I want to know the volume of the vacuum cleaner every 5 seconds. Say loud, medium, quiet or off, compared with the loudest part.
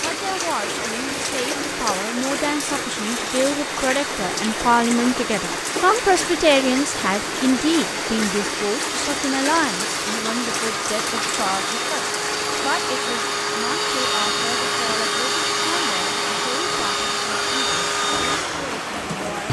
medium, medium, loud, loud.